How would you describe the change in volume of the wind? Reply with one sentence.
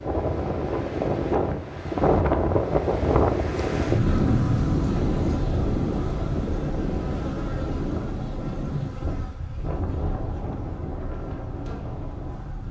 The volume of the wind goes down.